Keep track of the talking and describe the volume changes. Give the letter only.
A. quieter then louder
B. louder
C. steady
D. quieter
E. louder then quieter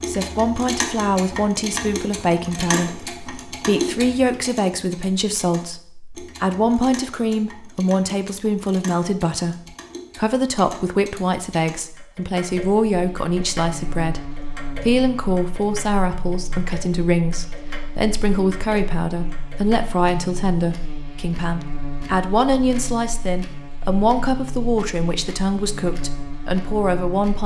C.